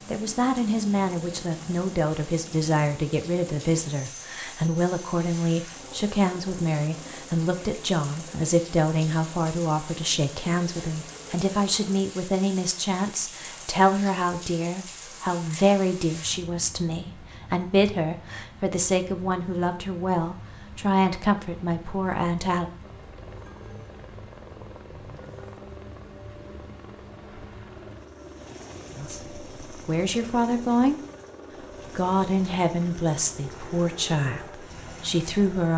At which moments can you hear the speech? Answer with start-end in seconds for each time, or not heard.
0.1-22.7, 28.9-31.0, 31.9-35.7.